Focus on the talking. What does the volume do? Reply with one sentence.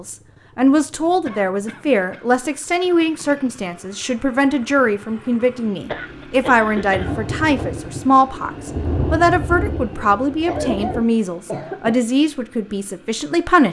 The volume of the talking stays about the same.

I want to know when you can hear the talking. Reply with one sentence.
The talking can be heard from 0.0 to 13.6 s.